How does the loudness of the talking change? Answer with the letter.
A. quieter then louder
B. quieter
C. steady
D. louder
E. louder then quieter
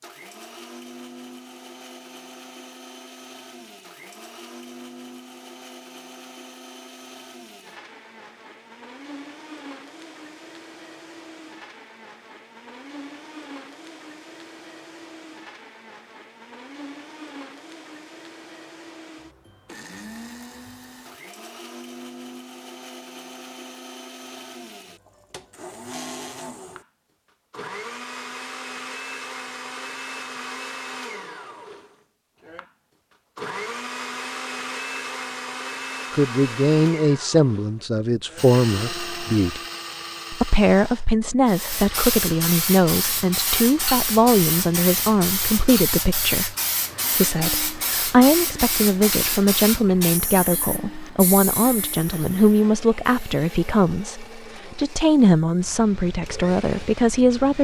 C.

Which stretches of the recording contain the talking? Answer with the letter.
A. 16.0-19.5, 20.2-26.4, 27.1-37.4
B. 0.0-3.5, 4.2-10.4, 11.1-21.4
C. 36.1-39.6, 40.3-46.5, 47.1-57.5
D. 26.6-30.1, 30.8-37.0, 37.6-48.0
C.